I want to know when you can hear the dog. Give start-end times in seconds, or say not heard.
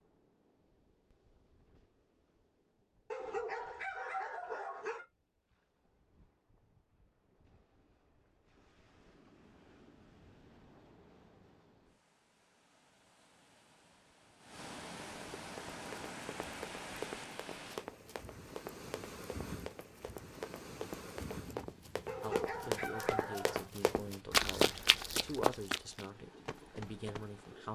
3.1-5.0, 22.1-23.7.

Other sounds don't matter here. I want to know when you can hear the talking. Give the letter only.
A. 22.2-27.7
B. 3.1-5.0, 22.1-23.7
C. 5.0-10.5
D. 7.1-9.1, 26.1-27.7
A.